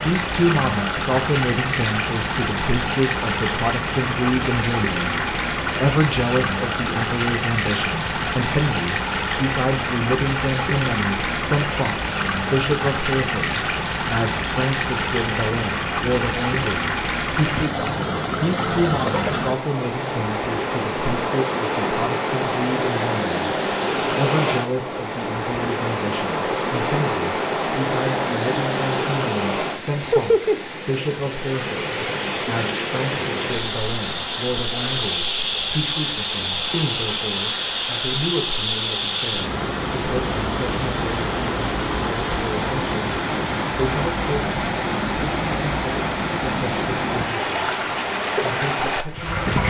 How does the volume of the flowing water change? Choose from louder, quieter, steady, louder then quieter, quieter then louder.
steady.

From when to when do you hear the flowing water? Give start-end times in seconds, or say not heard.
0.0-49.6.